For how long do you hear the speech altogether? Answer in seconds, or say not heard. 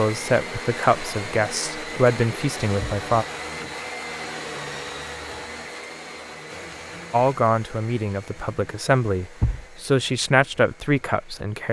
8 s.